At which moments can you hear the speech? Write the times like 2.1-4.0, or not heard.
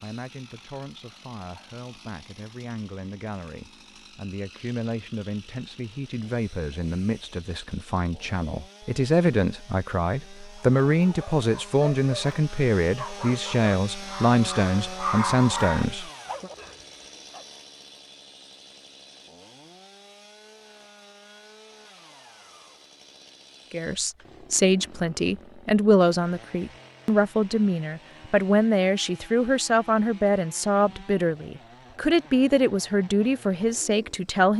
0.0-16.5, 23.7-34.5.